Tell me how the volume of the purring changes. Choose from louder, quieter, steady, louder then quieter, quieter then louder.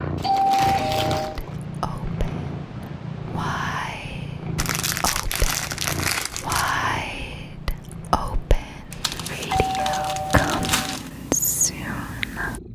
quieter.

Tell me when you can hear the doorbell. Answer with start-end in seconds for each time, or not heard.
0.2-1.4, 9.4-11.0.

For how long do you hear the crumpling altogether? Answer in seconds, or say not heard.
6 s.